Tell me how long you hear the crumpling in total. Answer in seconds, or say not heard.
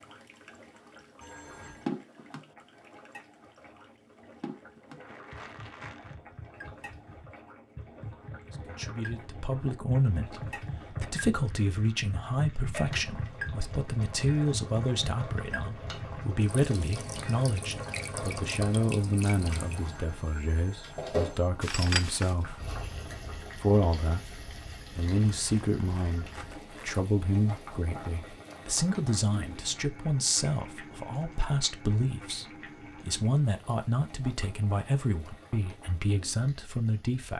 4 s.